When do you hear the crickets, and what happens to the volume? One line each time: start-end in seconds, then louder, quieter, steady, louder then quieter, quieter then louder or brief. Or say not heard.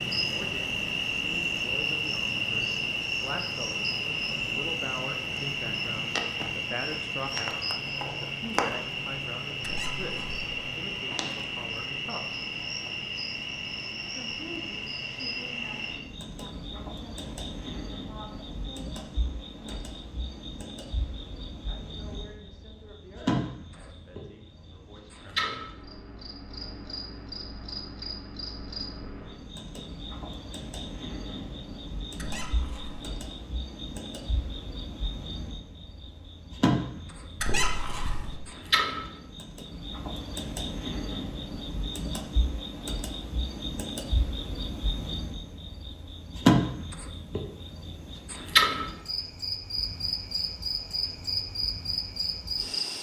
0.0-52.9 quieter then louder.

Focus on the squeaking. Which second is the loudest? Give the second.
38 s.